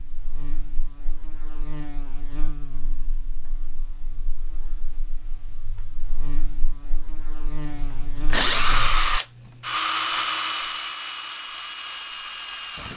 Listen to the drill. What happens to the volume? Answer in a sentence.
The loudness of the drill goes down.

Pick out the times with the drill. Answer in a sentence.
You can hear the drill from 7.7 to 12.9 s.